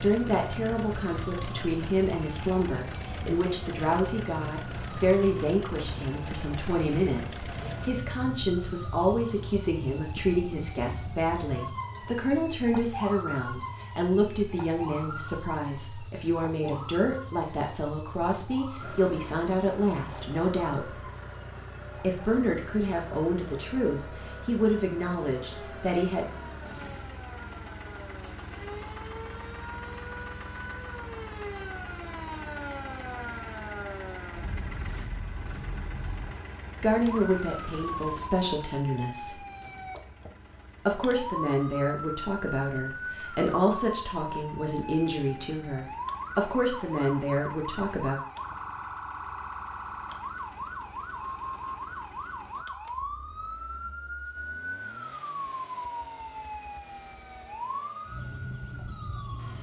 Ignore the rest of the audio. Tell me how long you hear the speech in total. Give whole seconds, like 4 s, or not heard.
35 s.